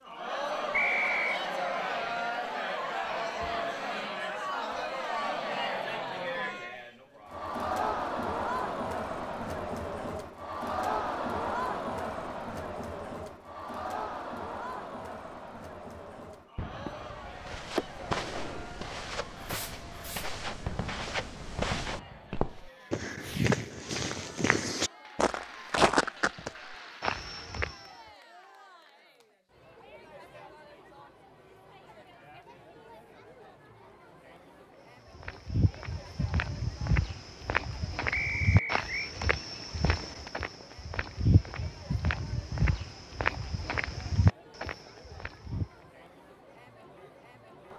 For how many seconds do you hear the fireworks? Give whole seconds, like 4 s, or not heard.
11 s.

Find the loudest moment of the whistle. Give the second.
1 s.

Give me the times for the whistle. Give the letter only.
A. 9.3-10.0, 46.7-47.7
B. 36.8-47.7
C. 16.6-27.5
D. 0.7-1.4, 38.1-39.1
D.